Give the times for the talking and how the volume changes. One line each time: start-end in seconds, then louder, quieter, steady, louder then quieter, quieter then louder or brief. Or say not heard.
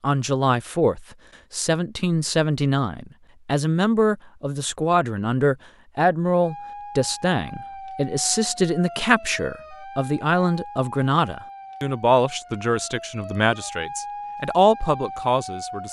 0.0-15.8 steady.